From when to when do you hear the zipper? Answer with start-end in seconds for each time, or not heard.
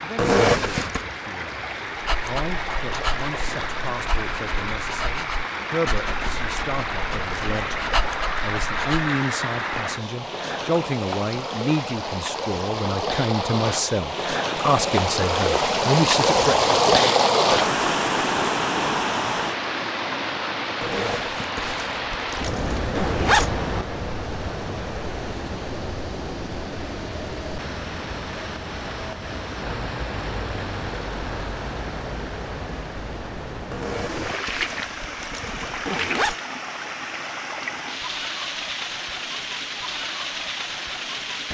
0.1-1.1, 20.8-23.5, 33.7-36.4.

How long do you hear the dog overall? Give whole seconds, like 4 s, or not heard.
7 s.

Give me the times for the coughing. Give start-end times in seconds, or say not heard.
not heard.